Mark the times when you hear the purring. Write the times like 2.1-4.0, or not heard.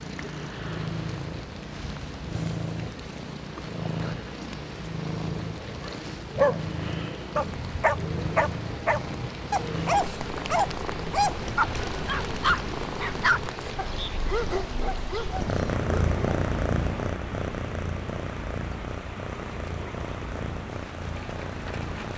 0.0-22.1.